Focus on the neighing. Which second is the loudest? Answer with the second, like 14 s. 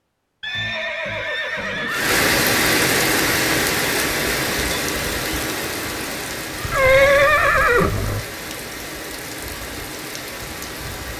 7 s.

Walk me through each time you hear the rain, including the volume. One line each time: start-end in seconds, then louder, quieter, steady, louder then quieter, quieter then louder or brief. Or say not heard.
1.9-11.1 quieter.